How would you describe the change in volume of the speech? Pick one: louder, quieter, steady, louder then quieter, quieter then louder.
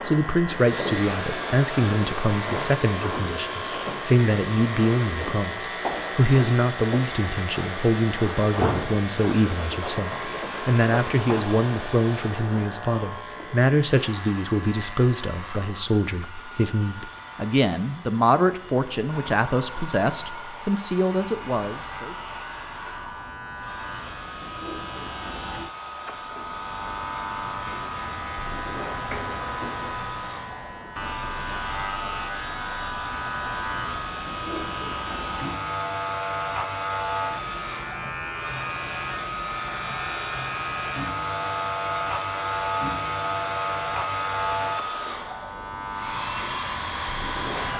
steady.